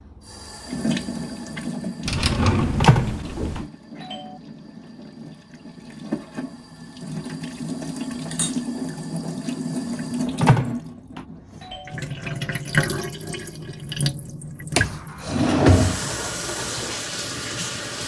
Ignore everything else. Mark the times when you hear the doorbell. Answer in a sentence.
You can hear the doorbell from 2.8 to 4.2 s and from 10.4 to 11.8 s.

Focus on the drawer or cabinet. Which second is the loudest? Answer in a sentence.
The volume of the drawer or cabinet peaks at 16 seconds.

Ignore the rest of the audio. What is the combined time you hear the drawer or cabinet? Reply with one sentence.
You can hear the drawer or cabinet for 3 seconds altogether.